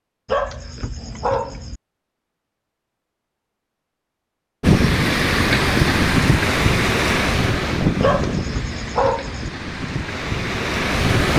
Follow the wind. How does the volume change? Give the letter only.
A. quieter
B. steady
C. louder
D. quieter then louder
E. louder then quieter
D.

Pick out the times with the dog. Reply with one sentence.
The dog can be heard from 0.2 to 1.8 s and from 8.0 to 9.5 s.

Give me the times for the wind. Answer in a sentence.
You can hear the wind from 4.6 to 11.3 s.